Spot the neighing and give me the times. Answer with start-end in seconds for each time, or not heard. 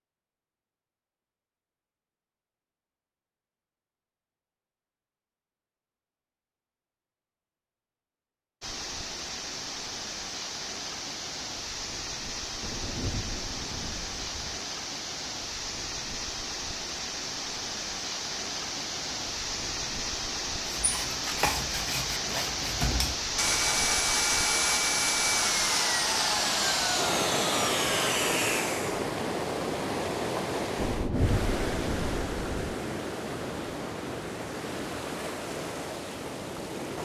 not heard.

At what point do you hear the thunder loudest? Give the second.
31 s.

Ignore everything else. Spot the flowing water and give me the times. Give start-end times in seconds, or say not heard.
8.6-37.0.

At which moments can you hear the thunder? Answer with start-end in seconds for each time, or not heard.
12.6-14.6, 30.8-32.7.